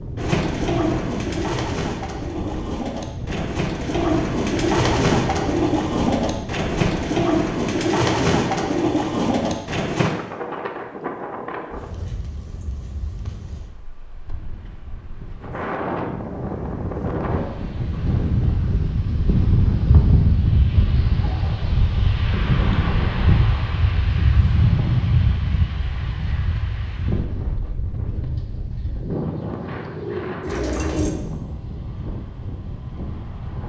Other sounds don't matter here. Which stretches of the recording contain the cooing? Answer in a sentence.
The cooing can be heard from 0.1 to 10.2 s and from 28.1 to 31.1 s.